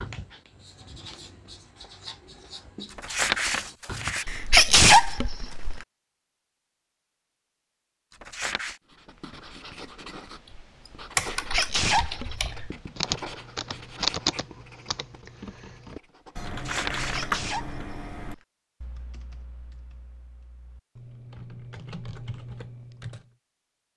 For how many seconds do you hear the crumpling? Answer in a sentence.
The crumpling can be heard for 3 seconds in total.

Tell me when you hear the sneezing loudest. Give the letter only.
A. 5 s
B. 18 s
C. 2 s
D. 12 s
A.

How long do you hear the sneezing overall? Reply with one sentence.
You can hear the sneezing for 4 seconds altogether.